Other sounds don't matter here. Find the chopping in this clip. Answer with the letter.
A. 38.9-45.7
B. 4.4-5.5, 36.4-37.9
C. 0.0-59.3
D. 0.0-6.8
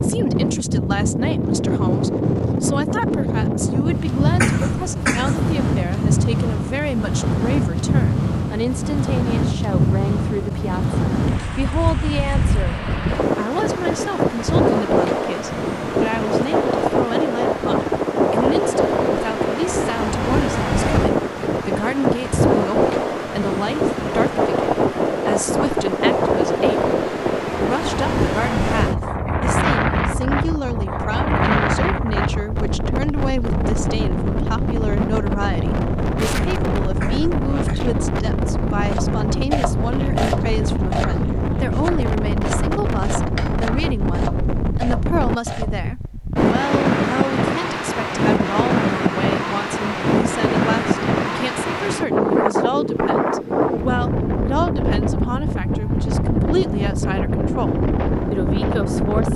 A.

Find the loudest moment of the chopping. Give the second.
40 s.